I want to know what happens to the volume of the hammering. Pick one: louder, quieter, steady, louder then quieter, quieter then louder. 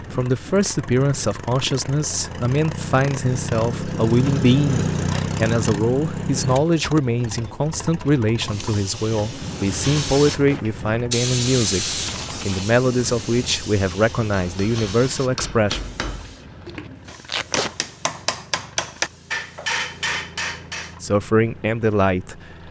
quieter then louder.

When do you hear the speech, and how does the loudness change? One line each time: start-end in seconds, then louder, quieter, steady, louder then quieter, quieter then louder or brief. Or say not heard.
0.1-15.8 steady
21.0-22.4 brief.